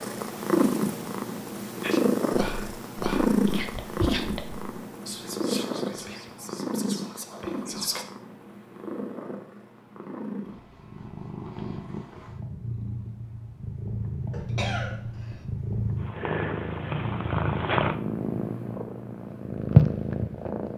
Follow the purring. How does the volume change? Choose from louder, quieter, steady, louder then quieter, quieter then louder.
quieter then louder.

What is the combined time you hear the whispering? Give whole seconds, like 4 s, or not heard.
6 s.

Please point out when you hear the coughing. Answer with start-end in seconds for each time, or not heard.
14.3-15.4.